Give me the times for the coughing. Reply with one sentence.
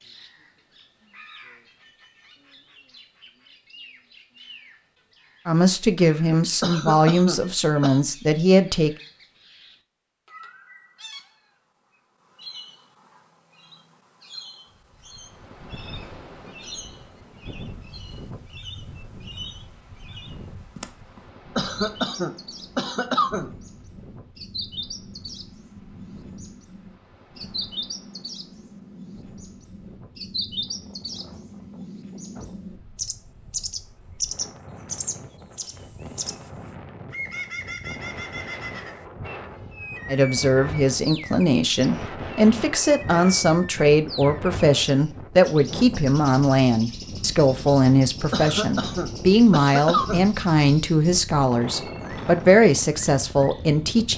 You can hear the coughing from 6.6 to 8.0 s, from 21.6 to 23.5 s and from 48.3 to 50.3 s.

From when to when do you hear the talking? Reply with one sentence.
You can hear the talking from 5.5 to 8.9 s and from 40.1 to 54.1 s.